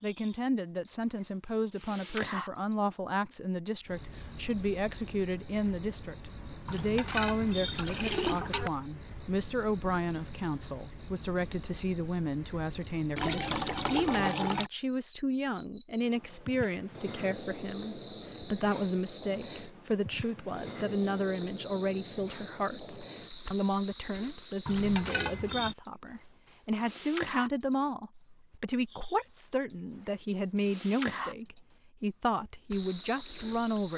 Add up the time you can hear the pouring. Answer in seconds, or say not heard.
5 s.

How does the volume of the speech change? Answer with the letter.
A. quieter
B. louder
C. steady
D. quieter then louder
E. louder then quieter
C.